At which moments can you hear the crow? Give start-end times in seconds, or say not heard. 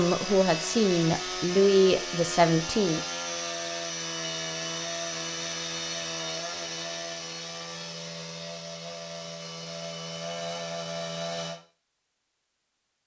not heard.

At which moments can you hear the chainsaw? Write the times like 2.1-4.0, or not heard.
0.0-11.6.